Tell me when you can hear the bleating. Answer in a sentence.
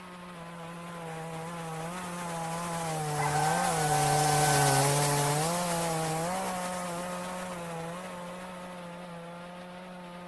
You can't hear the bleating here.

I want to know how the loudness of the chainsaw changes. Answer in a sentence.
The volume of the chainsaw goes up, then down.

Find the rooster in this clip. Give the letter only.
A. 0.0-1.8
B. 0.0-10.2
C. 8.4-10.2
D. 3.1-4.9
D.